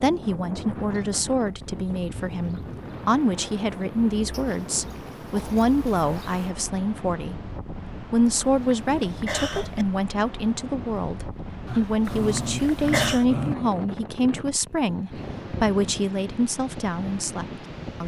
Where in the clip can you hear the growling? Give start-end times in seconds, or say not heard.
4.3-5.8, 11.7-13.6.